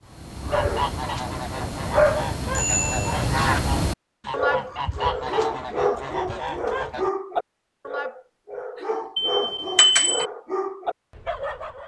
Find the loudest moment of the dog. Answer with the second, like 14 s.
2 s.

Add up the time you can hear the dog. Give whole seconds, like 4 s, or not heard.
12 s.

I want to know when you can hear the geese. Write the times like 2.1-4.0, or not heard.
0.5-7.1.